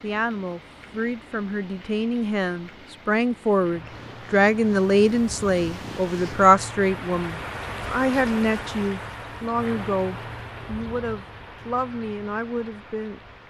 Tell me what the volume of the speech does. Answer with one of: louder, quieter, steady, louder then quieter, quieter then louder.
louder then quieter.